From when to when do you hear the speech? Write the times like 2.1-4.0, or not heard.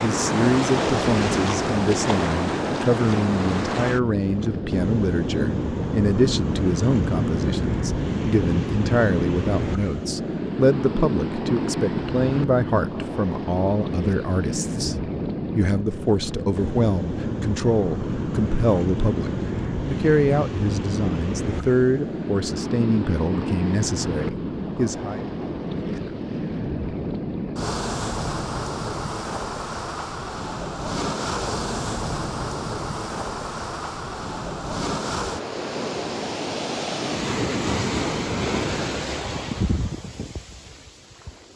0.0-14.9, 15.6-25.2.